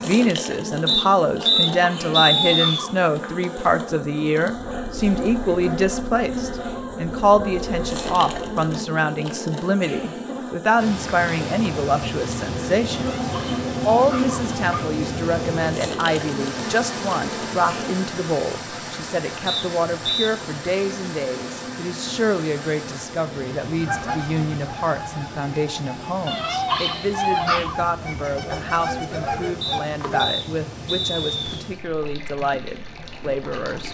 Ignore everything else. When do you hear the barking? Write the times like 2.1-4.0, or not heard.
1.4-3.0, 12.9-14.9, 26.2-27.8.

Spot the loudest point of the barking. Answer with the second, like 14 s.
27 s.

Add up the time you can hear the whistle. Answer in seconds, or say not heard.
5 s.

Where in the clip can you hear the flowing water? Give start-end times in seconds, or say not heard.
10.8-33.9.